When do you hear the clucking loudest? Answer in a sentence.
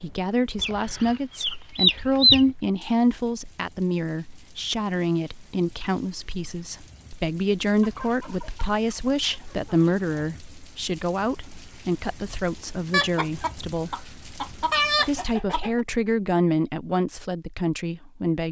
The volume of the clucking peaks at 2 seconds.